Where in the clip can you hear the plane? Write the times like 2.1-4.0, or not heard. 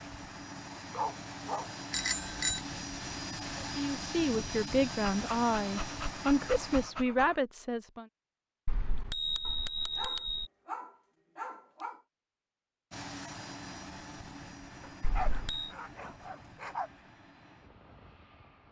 0.0-6.9, 12.9-18.6.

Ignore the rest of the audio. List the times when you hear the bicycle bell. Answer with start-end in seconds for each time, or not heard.
1.9-2.6, 8.7-10.5, 15.0-15.7.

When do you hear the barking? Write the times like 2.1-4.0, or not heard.
0.9-1.7, 5.1-7.4, 9.4-12.0, 14.8-16.9.